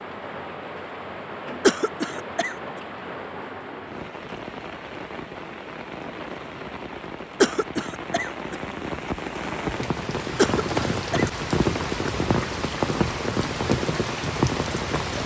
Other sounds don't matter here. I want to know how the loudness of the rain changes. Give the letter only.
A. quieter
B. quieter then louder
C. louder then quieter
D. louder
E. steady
D.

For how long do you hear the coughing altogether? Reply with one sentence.
The coughing can be heard for 3 seconds in total.